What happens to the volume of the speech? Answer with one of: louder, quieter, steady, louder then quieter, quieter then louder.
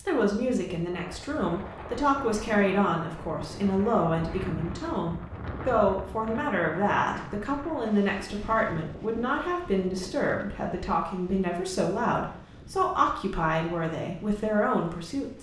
steady.